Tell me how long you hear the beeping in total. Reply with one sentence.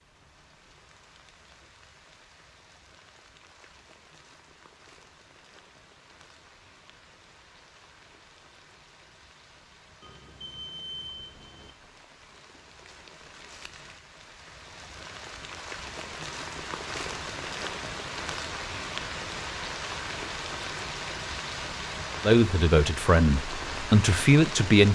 The beeping can be heard for 2 seconds in total.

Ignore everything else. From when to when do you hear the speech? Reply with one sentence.
The speech can be heard from 22.2 to 24.9 s.